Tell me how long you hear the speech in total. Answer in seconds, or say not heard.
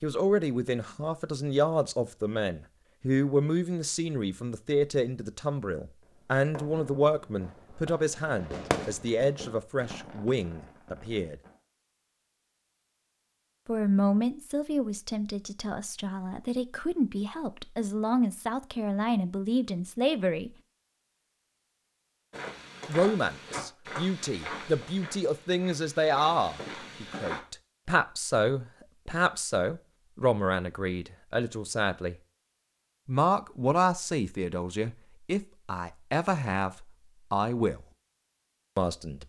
33 s.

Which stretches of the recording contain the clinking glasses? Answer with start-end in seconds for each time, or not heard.
not heard.